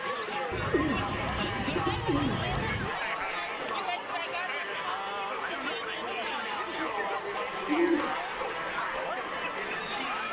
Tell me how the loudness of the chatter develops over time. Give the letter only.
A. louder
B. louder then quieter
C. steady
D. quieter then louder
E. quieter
C.